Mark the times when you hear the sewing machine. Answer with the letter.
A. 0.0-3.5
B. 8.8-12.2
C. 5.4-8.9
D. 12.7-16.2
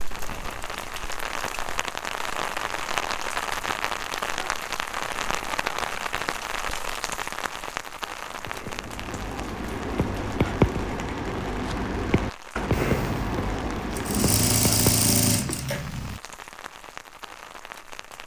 D.